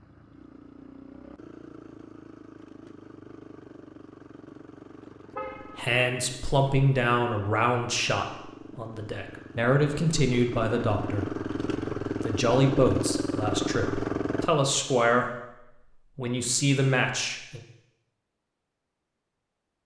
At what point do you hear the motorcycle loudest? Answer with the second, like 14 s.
13 s.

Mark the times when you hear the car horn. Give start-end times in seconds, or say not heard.
5.3-6.0.